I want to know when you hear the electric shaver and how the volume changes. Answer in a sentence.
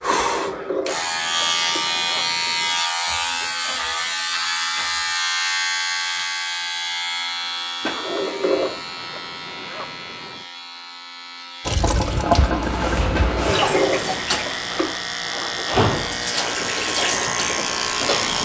You can hear the electric shaver from 0.0 to 18.4 s, getting quieter then louder.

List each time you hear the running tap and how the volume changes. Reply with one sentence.
You can hear the running tap from 11.7 to 18.4 s, getting quieter then louder.